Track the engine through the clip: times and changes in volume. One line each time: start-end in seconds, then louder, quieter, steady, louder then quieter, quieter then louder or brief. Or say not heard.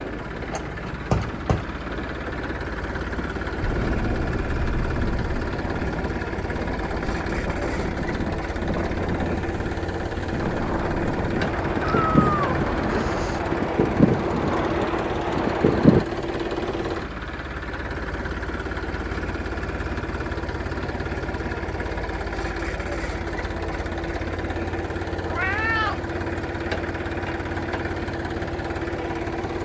0.0-29.5 steady.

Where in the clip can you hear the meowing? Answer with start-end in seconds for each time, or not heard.
3.6-5.5, 11.4-13.4, 25.2-26.0.